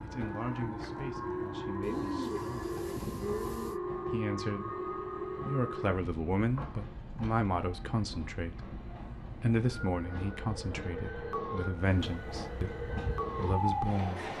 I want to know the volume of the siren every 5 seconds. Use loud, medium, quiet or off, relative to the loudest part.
loud, medium, loud.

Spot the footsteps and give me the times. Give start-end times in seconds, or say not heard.
not heard.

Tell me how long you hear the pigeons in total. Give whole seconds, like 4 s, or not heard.
2 s.